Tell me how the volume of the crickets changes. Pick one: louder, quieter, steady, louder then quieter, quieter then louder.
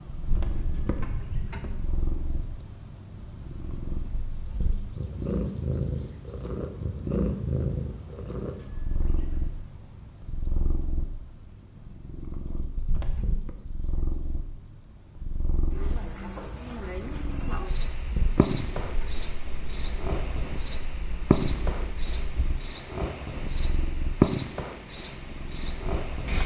quieter then louder.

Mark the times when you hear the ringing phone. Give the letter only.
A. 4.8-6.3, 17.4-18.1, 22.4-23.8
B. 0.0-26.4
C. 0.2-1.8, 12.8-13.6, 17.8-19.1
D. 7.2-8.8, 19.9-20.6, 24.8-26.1
C.